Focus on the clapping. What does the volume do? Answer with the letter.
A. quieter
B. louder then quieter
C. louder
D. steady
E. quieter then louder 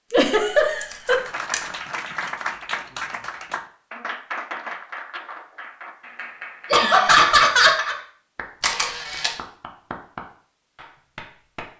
A.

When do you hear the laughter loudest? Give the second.
7 s.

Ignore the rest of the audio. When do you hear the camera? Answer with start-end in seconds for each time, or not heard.
0.8-1.6, 8.6-9.3.